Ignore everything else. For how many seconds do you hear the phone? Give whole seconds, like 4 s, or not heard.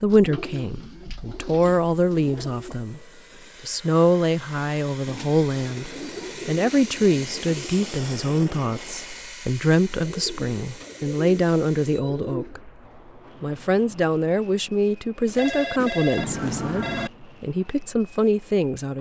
2 s.